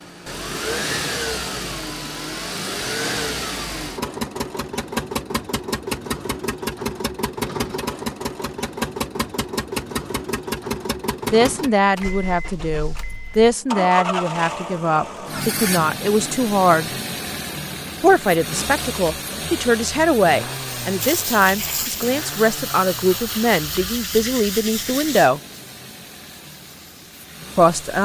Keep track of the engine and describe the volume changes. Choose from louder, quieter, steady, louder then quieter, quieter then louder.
quieter.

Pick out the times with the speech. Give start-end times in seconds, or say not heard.
11.3-16.9, 18.0-25.4, 27.6-28.0.